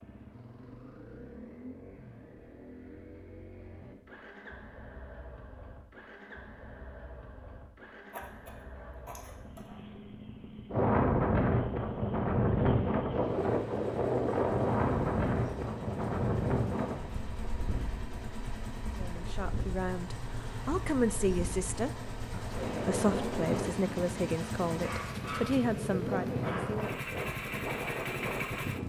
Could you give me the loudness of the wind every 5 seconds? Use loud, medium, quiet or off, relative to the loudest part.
off, off, loud, medium, medium, medium.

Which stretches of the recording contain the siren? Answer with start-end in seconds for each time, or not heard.
not heard.